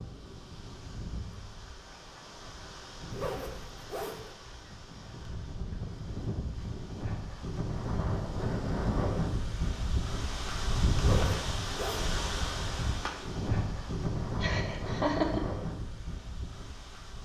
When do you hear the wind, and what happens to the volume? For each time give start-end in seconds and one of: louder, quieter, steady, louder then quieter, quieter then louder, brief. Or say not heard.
0.0-17.2 louder.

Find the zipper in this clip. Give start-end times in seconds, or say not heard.
3.1-4.3, 10.9-12.2.